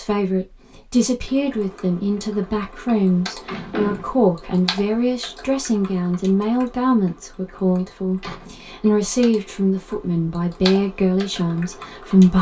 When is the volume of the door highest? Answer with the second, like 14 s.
4 s.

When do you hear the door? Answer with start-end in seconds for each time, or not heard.
3.5-4.2, 7.8-8.5.